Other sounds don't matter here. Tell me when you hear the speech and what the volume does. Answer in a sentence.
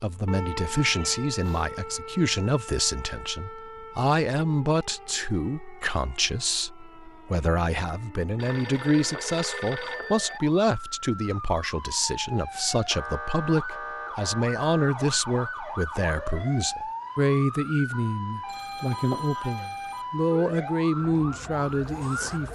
You can hear the speech from 0.0 to 22.5 s, at a steady volume.